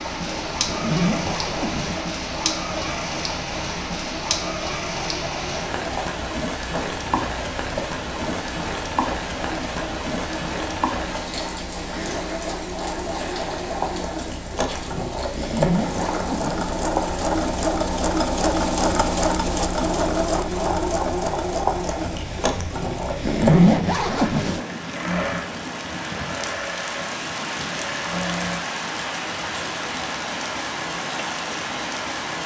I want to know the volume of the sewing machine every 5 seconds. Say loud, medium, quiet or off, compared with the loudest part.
medium, medium, medium, loud, loud, medium, off.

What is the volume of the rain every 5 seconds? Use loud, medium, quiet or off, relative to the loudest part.
loud, loud, loud, medium, medium, loud, loud.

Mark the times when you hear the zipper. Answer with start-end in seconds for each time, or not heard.
0.7-2.0, 15.3-16.7, 23.2-24.6.